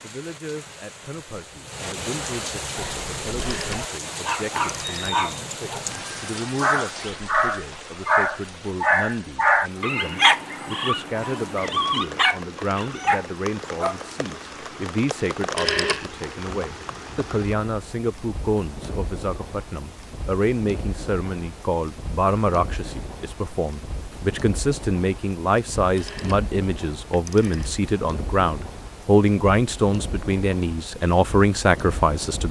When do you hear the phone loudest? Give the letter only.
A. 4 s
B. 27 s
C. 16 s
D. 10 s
C.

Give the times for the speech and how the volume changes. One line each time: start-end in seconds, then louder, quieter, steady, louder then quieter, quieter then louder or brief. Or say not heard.
0.0-32.4 louder.